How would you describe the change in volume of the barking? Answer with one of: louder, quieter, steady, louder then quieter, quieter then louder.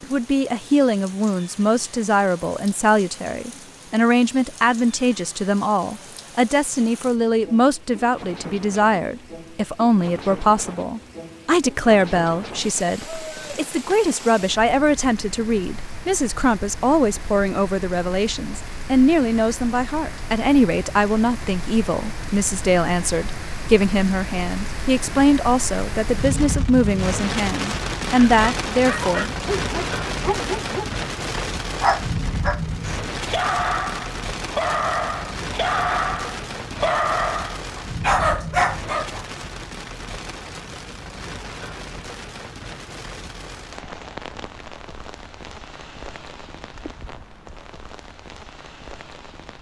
louder.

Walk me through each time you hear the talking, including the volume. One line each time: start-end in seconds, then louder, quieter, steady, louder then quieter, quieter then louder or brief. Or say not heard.
0.0-29.4 steady.